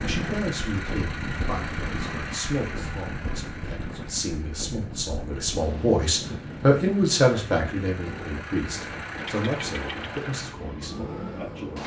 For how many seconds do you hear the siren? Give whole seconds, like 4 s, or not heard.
3 s.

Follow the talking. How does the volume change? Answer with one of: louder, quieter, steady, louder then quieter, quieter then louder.
louder then quieter.